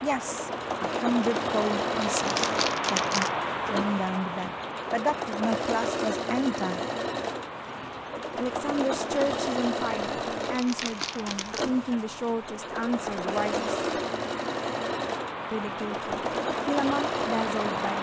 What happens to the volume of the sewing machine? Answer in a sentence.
The volume of the sewing machine stays about the same.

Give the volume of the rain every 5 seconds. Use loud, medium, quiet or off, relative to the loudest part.
loud, medium, medium, loud.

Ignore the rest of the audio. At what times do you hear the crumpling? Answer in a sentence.
You can hear the crumpling from 2.0 to 3.4 s and from 10.4 to 11.7 s.